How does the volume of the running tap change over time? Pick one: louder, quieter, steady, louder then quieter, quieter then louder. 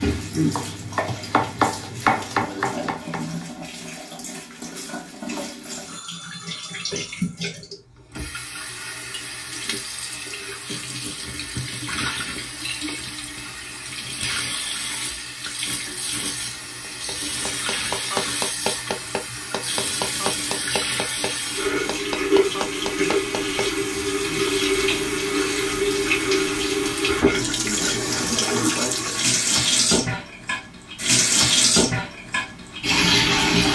louder.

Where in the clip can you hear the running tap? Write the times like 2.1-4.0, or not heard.
0.0-33.6.